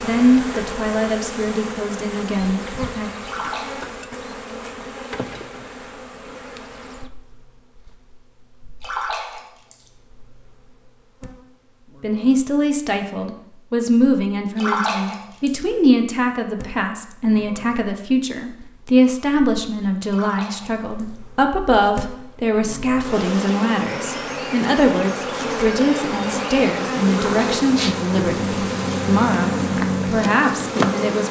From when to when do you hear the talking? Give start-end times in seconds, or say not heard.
0.0-3.1, 12.0-31.2.